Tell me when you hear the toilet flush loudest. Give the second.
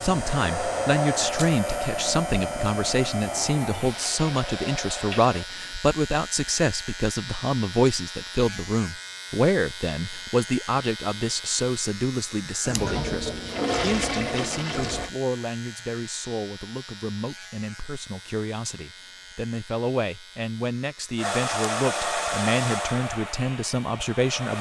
14 s.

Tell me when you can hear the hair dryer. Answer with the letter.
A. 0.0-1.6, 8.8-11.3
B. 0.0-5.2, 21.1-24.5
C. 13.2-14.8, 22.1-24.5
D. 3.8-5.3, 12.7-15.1
B.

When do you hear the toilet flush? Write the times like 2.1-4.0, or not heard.
3.8-5.3, 12.7-15.1.